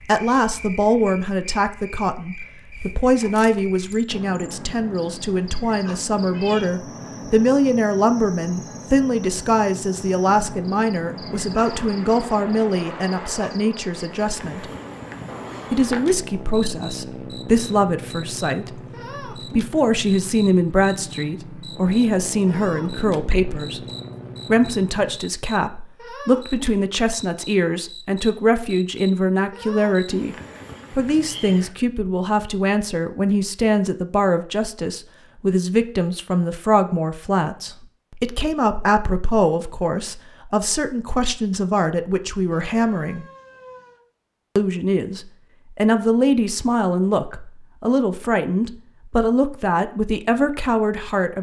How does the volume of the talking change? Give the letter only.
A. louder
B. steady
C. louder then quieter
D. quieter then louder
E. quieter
B.